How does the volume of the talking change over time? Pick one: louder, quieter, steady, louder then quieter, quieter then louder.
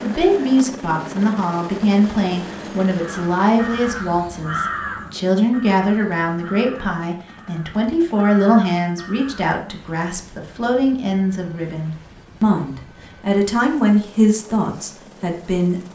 steady.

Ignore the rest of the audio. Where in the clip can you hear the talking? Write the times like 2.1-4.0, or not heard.
0.0-15.9.